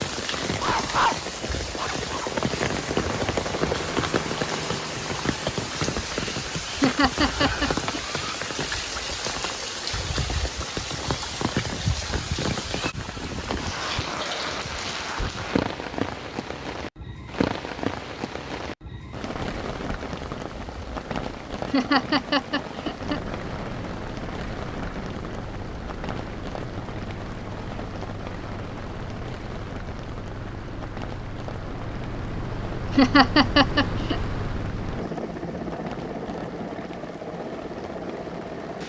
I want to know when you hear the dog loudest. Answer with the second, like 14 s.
1 s.